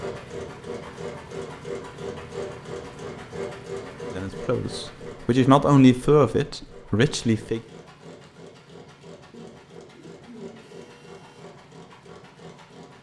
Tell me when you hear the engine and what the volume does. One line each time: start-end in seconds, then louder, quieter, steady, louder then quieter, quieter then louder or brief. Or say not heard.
0.0-12.9 quieter.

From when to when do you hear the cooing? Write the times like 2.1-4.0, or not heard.
9.3-10.9.